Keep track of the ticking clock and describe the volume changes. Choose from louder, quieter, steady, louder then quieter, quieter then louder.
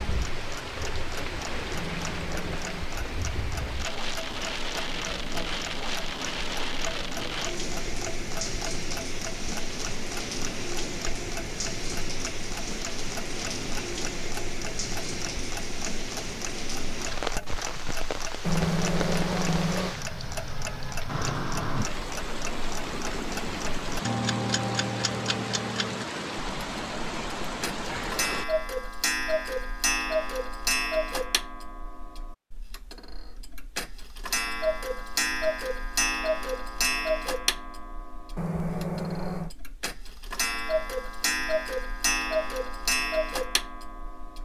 louder.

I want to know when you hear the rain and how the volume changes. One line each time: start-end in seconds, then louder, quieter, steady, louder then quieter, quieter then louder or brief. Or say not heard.
0.0-28.4 steady.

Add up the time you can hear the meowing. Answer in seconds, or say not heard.
4 s.